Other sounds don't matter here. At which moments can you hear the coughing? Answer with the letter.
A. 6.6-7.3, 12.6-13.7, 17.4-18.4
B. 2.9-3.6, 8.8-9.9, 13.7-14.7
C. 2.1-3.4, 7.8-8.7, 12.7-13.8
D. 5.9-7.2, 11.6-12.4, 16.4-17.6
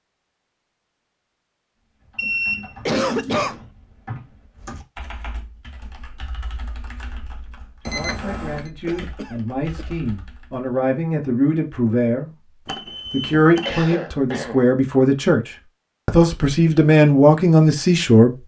B.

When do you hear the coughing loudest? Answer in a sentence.
The volume of the coughing peaks at 3 seconds.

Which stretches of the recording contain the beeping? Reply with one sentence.
You can hear the beeping from 2.1 to 3.4 s, from 7.8 to 8.7 s and from 12.7 to 13.8 s.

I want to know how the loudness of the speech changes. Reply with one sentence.
The loudness of the speech goes up.